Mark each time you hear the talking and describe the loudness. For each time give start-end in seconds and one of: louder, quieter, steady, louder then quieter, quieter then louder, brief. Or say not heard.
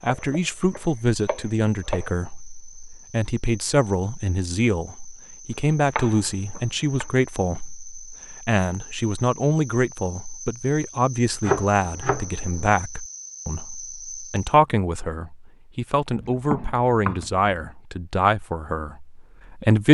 0.0-19.8 steady.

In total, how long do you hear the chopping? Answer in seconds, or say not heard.
6 s.